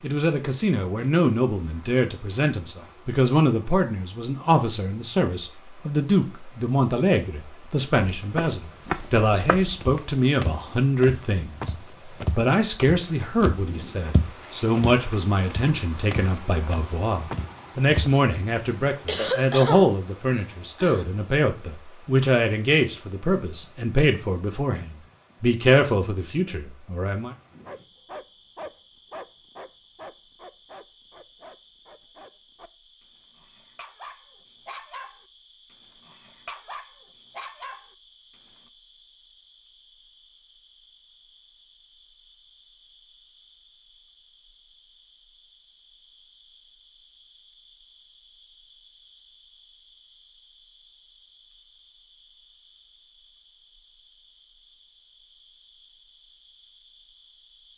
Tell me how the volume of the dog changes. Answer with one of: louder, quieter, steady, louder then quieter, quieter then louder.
quieter then louder.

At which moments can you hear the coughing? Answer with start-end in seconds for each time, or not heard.
19.1-21.1.